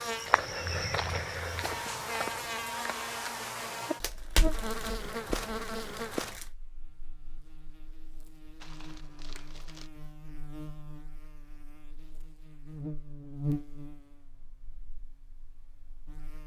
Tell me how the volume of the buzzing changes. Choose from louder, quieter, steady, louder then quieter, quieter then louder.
quieter then louder.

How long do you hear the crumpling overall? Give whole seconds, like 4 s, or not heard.
4 s.